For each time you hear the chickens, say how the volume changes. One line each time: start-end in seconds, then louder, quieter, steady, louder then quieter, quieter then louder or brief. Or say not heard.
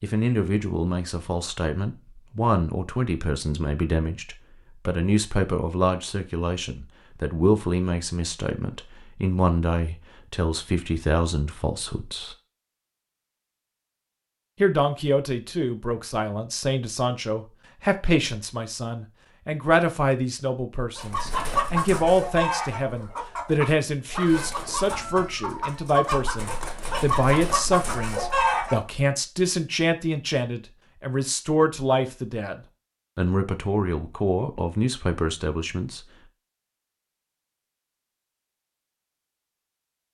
20.9-28.9 quieter then louder.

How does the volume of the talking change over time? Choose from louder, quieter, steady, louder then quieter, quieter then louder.
steady.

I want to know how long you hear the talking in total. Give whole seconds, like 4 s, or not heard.
34 s.